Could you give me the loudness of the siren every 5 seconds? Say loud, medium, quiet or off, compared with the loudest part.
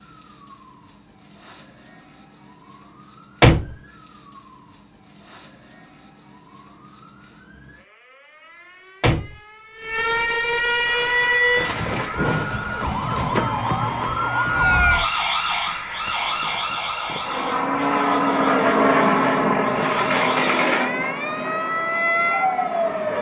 quiet, quiet, loud, medium, loud.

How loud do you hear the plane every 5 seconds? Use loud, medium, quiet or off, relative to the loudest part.
off, off, quiet, loud, medium.